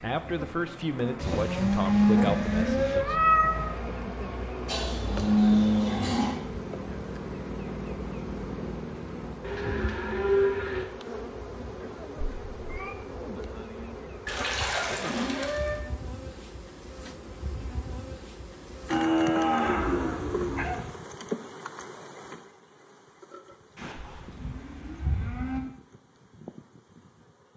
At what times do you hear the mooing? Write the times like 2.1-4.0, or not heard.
1.1-3.0, 4.7-6.4, 9.4-10.8, 14.2-15.8, 18.9-20.8, 23.8-25.6.